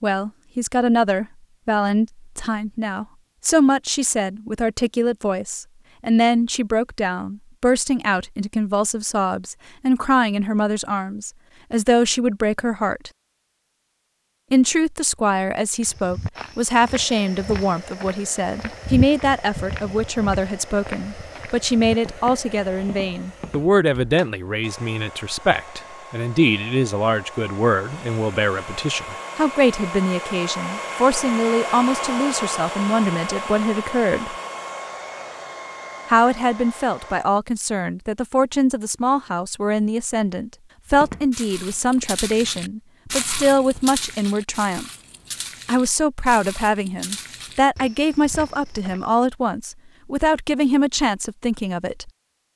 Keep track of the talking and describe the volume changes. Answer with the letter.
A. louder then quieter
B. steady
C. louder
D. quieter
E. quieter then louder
B.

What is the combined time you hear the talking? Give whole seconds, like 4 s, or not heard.
48 s.